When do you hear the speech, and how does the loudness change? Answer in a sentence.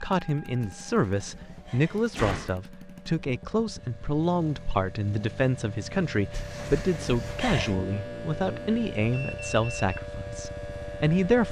The speech can be heard from 0.0 to 11.4 s, at a steady volume.